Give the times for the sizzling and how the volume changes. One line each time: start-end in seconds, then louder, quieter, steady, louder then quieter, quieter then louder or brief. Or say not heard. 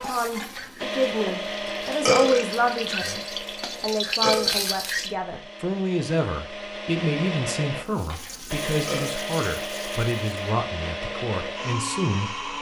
0.0-5.1 louder
7.8-10.3 brief.